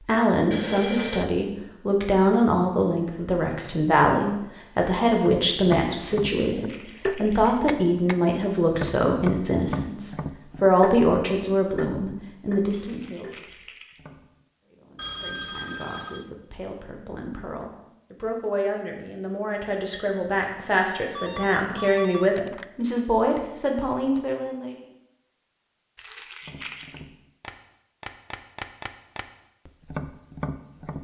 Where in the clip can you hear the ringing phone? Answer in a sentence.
You can hear the ringing phone from 0.5 to 1.3 s, from 14.9 to 16.2 s and from 21.1 to 22.6 s.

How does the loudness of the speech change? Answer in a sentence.
The volume of the speech goes down, then up.